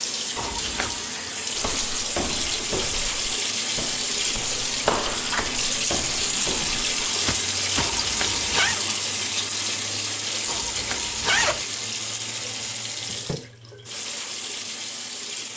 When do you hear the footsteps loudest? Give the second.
5 s.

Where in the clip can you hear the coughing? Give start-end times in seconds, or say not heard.
not heard.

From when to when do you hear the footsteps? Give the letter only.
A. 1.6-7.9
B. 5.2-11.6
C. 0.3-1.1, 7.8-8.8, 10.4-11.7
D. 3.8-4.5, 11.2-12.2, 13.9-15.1
A.